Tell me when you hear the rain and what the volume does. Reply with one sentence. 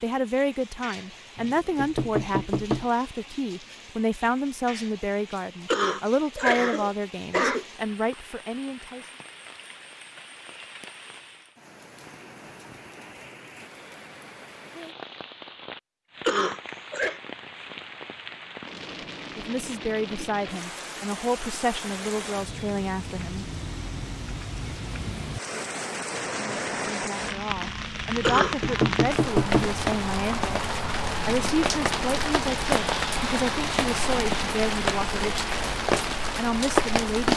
You can hear the rain from 0.0 to 37.3 s, getting louder.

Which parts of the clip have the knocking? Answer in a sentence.
You can hear the knocking from 1.4 to 2.9 s and from 28.4 to 29.8 s.